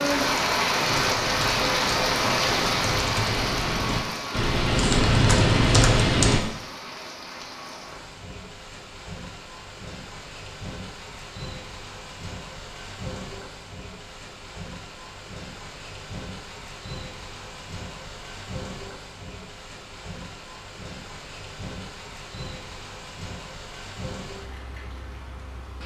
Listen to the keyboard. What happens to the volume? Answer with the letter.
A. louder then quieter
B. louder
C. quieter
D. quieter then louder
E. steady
B.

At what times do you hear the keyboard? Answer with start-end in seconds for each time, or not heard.
0.8-6.4.